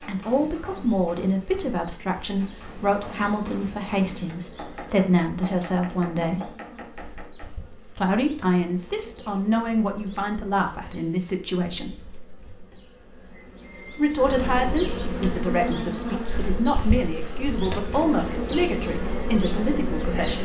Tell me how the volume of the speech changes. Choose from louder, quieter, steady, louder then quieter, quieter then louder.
steady.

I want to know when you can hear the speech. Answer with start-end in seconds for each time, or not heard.
0.1-6.5, 8.0-12.0, 13.9-20.4.